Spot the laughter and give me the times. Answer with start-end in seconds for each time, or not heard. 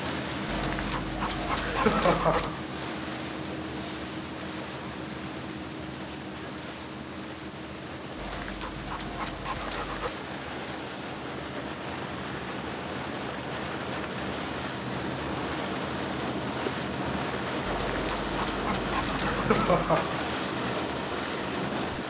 1.6-2.6, 19.2-20.2.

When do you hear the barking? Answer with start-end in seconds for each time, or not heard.
0.5-2.5, 8.2-10.1, 17.6-20.1.